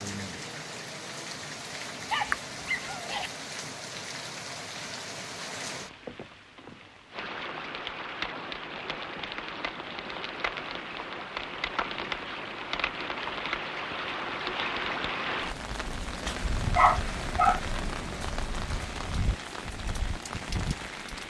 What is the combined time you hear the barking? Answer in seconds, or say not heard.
2 s.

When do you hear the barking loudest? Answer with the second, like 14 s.
17 s.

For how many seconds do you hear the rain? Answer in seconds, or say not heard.
21 s.